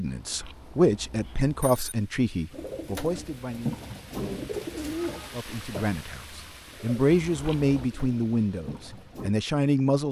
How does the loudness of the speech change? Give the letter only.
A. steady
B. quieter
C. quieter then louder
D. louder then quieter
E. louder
C.